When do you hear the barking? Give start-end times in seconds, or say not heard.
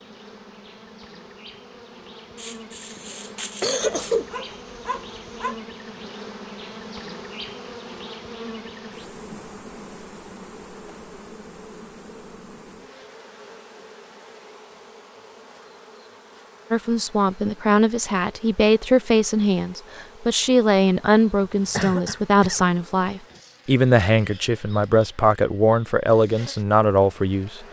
3.8-5.5.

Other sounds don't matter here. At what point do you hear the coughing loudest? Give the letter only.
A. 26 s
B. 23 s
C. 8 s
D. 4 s
D.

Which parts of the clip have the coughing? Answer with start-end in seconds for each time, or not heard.
2.4-4.3, 21.8-22.6.